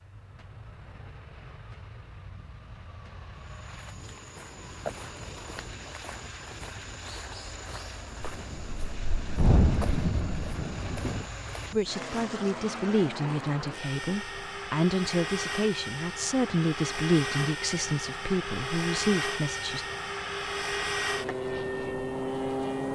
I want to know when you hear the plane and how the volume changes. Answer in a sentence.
The plane can be heard from 0.0 to 22.8 s, getting louder.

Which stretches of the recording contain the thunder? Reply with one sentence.
You can hear the thunder from 8.2 to 11.2 s.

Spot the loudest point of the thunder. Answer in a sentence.
The volume of the thunder peaks at 10 seconds.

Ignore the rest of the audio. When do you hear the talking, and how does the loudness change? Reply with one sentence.
The talking can be heard from 11.7 to 19.9 s, at a steady volume.